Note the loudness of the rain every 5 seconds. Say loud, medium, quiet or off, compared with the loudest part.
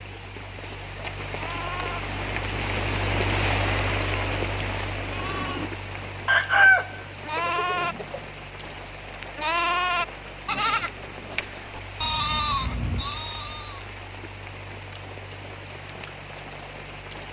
loud, medium, medium, medium.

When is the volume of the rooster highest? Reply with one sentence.
The volume of the rooster peaks at 7 seconds.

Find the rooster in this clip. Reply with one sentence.
You can hear the rooster from 6.2 to 8.2 s.